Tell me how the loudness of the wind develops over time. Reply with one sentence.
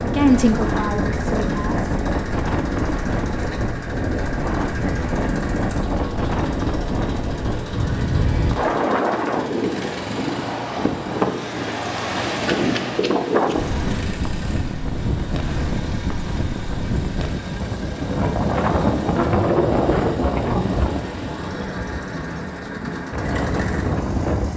The volume of the wind stays about the same.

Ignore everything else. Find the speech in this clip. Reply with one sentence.
You can hear the speech from 0.0 to 1.9 s.